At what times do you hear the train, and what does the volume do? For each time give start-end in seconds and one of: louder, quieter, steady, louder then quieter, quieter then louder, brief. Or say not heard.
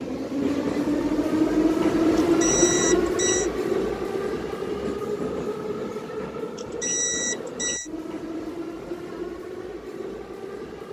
0.0-10.8 quieter.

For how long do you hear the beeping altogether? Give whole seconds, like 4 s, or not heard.
3 s.